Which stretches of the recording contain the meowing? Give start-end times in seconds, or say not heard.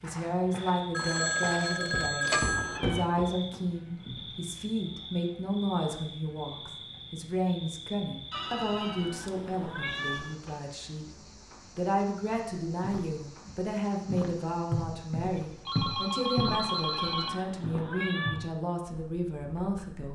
2.3-3.1, 8.3-10.4, 16.6-18.5.